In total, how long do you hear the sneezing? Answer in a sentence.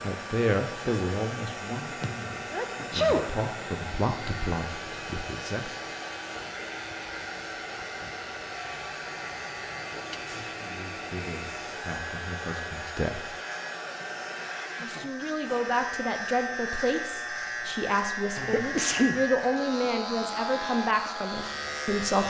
The sneezing can be heard for 4 seconds in total.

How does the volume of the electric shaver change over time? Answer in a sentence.
The volume of the electric shaver goes up.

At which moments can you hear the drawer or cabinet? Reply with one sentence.
You can't hear the drawer or cabinet here.